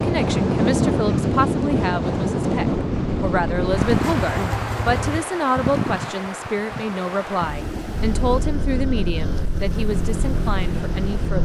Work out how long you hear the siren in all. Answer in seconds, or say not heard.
not heard.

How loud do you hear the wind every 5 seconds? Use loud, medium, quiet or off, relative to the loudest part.
loud, medium, quiet.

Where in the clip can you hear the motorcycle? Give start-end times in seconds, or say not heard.
2.8-5.2, 7.9-11.4.